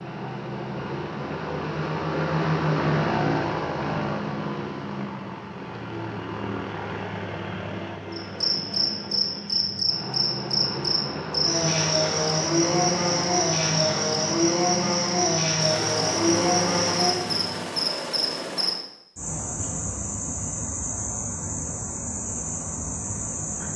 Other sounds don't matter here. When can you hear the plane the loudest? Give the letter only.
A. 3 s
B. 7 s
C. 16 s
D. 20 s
A.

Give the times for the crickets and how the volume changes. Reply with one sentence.
You can hear the crickets from 8.1 to 23.7 s, getting quieter.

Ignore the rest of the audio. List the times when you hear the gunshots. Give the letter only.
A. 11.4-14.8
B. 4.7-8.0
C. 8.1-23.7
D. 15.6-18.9
D.